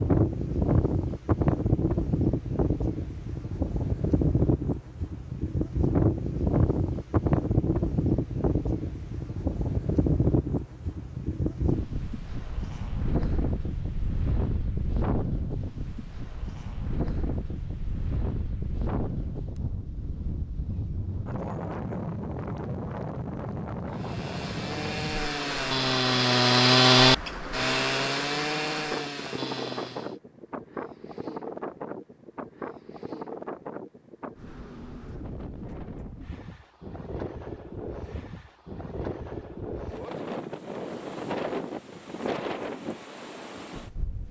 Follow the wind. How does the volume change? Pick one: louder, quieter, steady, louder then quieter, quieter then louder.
quieter.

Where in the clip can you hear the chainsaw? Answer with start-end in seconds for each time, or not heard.
23.9-30.1.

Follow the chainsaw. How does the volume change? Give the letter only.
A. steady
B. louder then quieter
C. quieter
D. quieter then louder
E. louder
B.